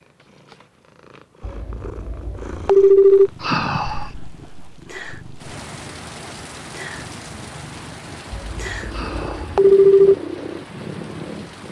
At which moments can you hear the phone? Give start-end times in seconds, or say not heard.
1.4-3.3, 8.3-10.2.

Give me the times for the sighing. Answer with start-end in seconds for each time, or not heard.
3.4-4.1, 8.9-9.6.